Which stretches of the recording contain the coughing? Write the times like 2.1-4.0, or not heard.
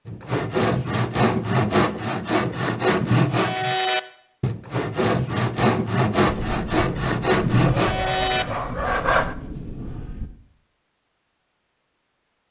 not heard.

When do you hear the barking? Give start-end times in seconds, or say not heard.
7.7-9.2.